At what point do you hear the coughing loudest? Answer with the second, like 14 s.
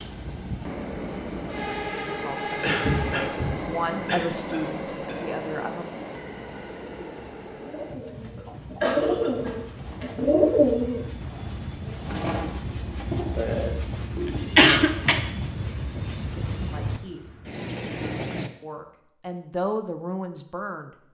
15 s.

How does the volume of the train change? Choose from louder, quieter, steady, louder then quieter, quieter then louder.
quieter then louder.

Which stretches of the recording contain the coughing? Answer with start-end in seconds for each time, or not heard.
2.6-5.2, 8.3-10.2, 14.6-15.2.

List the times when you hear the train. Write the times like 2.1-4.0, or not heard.
0.0-18.5.